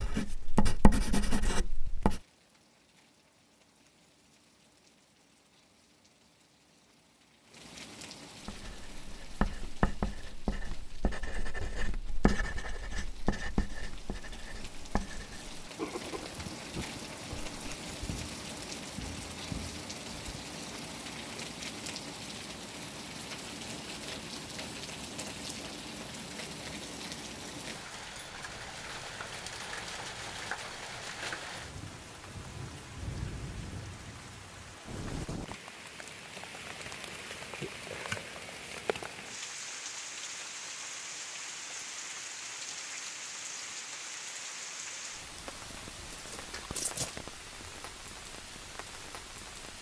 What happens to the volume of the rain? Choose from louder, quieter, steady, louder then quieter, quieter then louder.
louder.